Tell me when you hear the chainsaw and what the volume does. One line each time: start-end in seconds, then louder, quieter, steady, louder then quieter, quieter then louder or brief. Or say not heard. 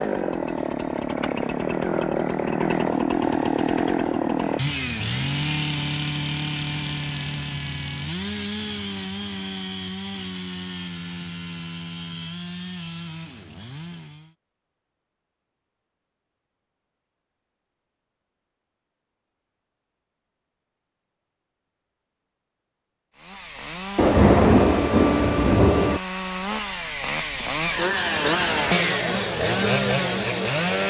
0.0-14.3 quieter
23.1-30.8 louder.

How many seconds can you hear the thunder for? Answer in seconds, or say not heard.
2 s.